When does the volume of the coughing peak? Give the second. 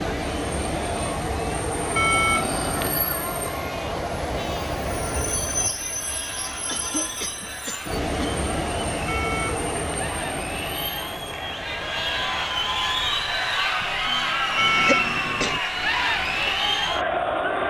15 s.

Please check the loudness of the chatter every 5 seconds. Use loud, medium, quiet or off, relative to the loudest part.
quiet, quiet, loud, loud.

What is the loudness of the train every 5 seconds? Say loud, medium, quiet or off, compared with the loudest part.
loud, loud, medium, quiet.